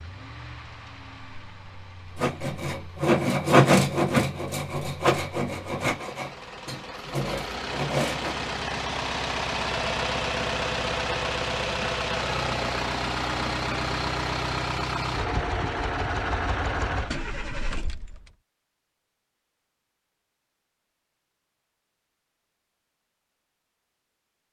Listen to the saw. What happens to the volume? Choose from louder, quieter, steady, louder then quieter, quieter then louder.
quieter.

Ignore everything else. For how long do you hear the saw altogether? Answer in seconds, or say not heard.
6 s.